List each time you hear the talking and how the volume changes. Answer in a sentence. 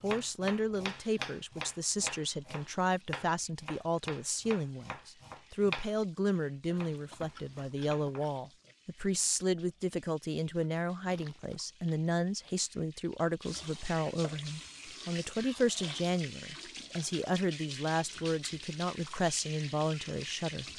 You can hear the talking from 0.0 to 20.6 s, at a steady volume.